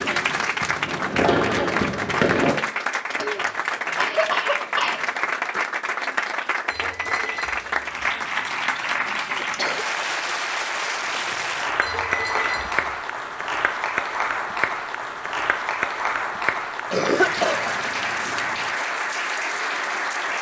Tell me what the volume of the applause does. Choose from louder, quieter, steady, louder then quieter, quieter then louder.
steady.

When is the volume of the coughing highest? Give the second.
17 s.